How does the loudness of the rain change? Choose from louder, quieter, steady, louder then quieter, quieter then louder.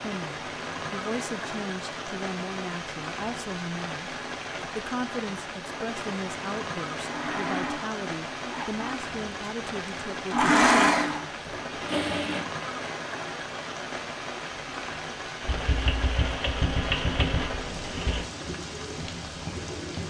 steady.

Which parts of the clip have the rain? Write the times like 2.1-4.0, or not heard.
0.0-20.0.